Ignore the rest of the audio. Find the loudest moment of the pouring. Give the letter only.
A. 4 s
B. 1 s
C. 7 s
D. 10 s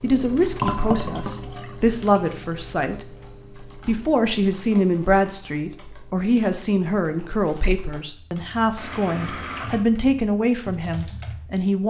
B.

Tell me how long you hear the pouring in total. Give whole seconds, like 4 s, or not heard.
3 s.